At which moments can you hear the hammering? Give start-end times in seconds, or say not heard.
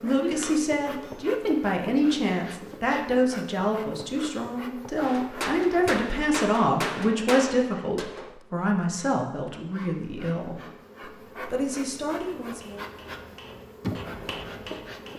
0.0-1.3, 5.0-8.3, 12.1-15.1.